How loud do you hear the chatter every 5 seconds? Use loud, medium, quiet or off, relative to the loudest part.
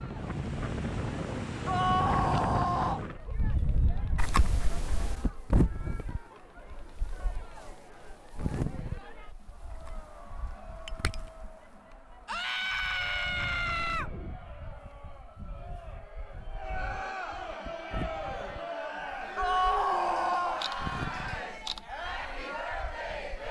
quiet, quiet, quiet, loud, loud.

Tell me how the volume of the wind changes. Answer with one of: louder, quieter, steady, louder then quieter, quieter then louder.
quieter then louder.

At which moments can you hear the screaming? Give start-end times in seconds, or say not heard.
1.6-3.0, 12.2-14.1, 19.4-20.6.